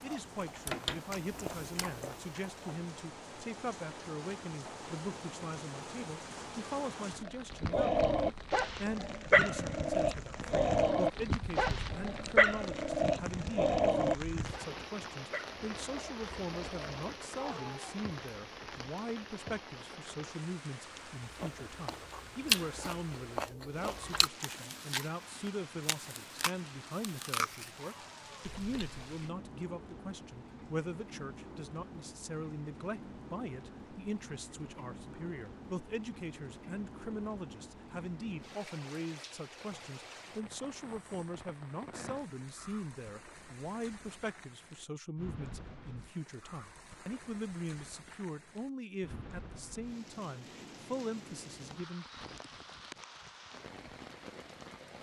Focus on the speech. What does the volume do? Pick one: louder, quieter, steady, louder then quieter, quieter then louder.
steady.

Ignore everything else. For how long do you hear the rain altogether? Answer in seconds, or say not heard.
55 s.